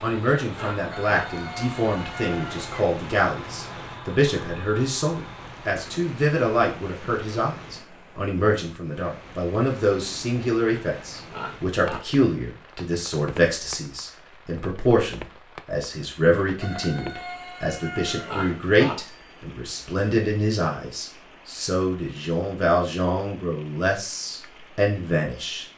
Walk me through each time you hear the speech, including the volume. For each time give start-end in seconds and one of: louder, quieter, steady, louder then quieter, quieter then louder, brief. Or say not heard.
0.0-25.6 steady.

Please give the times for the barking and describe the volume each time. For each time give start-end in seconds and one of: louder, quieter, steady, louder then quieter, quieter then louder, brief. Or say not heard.
not heard.